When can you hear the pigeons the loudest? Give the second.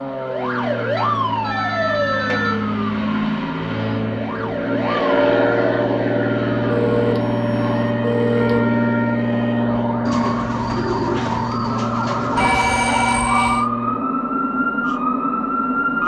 11 s.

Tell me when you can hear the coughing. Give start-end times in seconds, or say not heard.
not heard.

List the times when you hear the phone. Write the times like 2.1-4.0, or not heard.
0.9-2.7, 6.7-8.6, 12.3-13.7.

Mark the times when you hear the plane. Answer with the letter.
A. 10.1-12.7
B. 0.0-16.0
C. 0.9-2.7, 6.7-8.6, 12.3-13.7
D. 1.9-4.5
B.